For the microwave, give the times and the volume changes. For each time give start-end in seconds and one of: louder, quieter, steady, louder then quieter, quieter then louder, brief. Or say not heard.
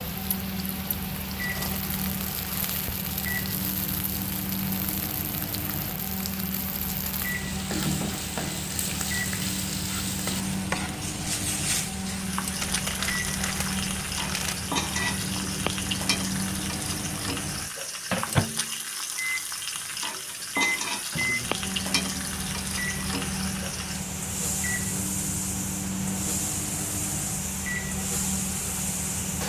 0.0-29.4 steady.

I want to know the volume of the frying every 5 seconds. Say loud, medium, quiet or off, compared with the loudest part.
medium, loud, loud, loud, loud, loud.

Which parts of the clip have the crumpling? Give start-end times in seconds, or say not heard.
12.6-14.7.